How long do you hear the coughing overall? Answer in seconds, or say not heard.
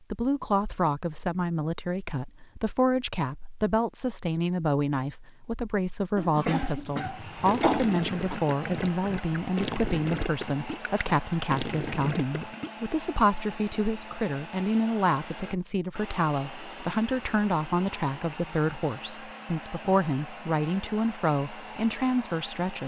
2 s.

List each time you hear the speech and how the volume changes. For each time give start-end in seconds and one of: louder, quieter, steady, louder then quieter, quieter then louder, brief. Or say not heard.
0.1-22.8 steady.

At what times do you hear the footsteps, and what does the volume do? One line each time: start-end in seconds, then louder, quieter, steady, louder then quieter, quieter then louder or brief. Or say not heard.
not heard.